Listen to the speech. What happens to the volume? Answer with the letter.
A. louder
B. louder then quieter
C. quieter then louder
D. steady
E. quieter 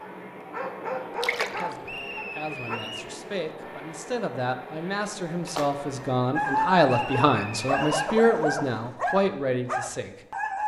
A.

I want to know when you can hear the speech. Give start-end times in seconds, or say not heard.
1.4-10.2.